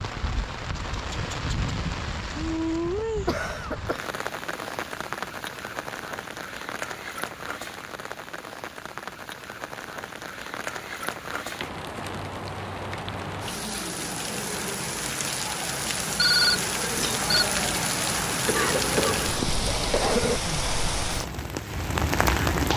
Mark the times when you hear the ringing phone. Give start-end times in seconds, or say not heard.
16.1-17.4.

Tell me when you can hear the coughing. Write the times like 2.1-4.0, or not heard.
3.0-4.1, 18.4-20.4.